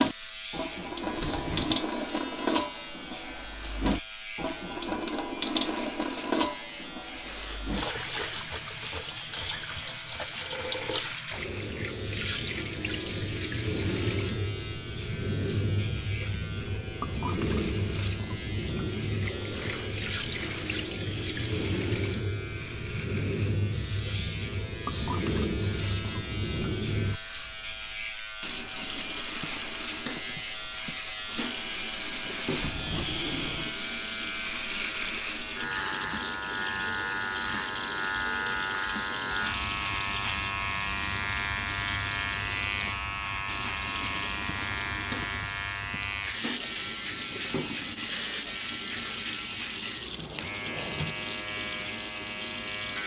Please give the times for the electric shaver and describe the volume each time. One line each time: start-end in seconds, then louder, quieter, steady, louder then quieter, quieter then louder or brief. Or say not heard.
0.0-53.0 louder.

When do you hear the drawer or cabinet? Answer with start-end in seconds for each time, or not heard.
1.1-1.9, 32.5-33.8, 50.1-51.3.